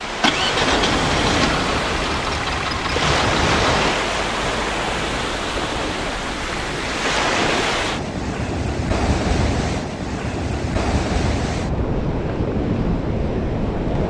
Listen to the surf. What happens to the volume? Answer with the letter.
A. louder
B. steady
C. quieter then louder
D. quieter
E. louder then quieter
B.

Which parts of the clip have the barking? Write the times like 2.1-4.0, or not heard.
not heard.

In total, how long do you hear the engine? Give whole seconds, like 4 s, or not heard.
4 s.